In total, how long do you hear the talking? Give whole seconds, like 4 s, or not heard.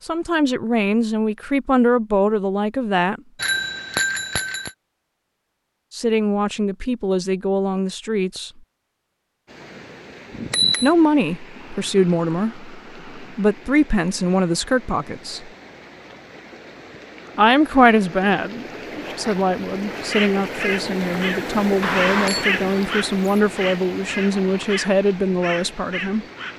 19 s.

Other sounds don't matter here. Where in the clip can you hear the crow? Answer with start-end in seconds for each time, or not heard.
20.1-26.5.